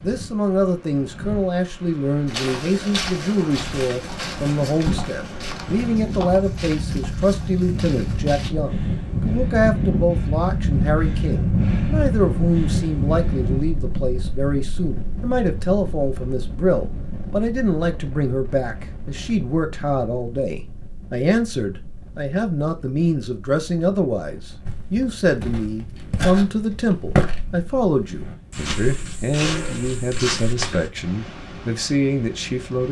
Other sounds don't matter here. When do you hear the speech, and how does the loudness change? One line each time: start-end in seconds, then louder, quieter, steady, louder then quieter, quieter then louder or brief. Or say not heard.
0.0-32.8 steady.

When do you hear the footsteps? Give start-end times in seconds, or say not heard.
2.2-8.5, 24.6-30.9.